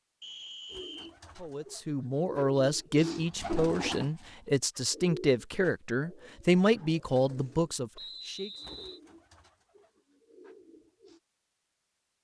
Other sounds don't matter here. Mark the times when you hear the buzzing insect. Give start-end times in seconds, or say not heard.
not heard.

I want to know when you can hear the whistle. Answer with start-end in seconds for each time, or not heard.
0.2-1.1, 8.0-9.0.